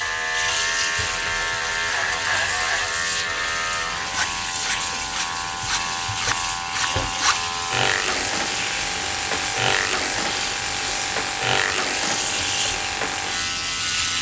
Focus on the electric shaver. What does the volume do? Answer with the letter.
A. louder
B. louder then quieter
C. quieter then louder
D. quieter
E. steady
E.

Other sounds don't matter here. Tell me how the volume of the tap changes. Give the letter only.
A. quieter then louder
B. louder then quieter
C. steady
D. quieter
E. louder
C.